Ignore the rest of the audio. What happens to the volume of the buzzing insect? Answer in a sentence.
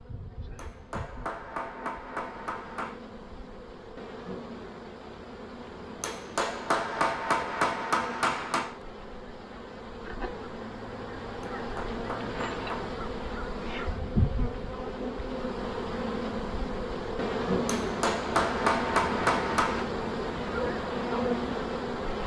The volume of the buzzing insect goes up.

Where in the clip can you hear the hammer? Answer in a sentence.
You can hear the hammer from 0.6 to 3.0 s, from 6.0 to 8.8 s, from 11.6 to 12.9 s and from 17.6 to 19.9 s.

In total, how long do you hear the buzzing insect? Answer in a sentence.
You can hear the buzzing insect for 22 seconds altogether.